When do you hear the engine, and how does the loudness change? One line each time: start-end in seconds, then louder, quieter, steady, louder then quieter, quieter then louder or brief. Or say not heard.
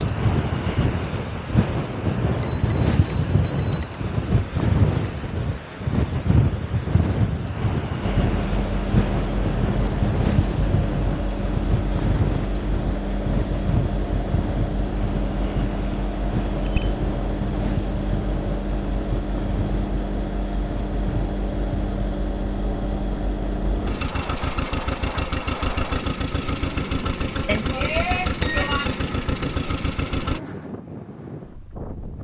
8.0-30.4 steady.